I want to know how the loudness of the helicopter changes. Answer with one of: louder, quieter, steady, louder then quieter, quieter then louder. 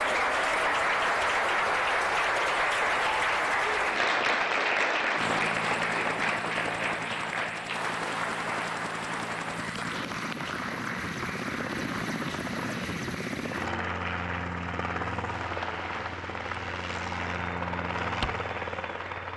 louder.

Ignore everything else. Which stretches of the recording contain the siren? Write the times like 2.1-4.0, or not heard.
not heard.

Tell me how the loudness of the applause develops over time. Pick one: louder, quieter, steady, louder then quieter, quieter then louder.
quieter.